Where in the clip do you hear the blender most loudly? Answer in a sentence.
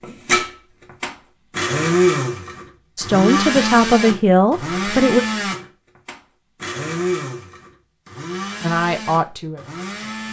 The volume of the blender peaks at 2 seconds.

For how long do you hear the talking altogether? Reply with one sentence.
The talking can be heard for 4 seconds in total.